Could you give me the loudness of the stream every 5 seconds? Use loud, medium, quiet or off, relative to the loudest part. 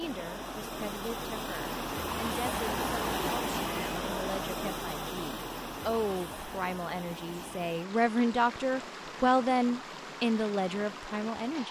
loud, medium, medium.